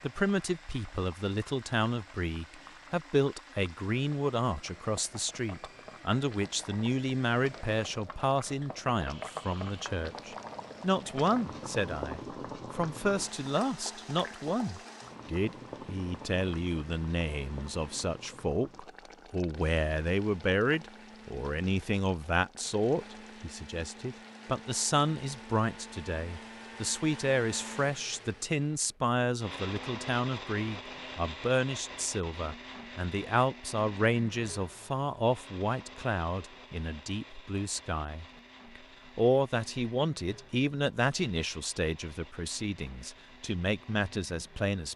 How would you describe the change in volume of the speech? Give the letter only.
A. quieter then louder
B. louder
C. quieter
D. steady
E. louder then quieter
D.